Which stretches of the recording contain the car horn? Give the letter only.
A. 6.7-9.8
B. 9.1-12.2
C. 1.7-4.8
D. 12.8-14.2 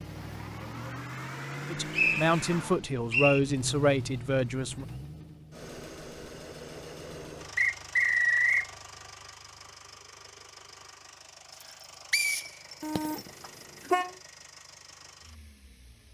D.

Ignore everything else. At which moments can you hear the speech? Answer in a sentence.
You can hear the speech from 1.7 to 4.8 s.